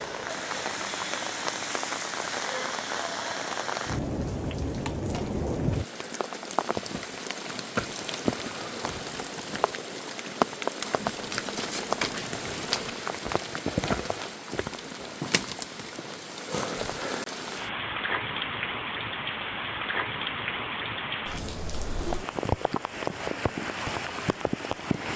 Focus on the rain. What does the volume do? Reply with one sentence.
The volume of the rain stays about the same.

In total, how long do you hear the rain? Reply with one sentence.
The rain can be heard for 25 seconds in total.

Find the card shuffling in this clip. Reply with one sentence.
You can hear the card shuffling from 10.9 to 12.9 s.